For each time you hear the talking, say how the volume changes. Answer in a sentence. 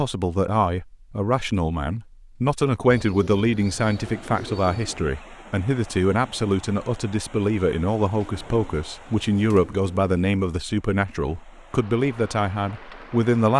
You can hear the talking from 0.0 to 13.5 s, at a steady volume.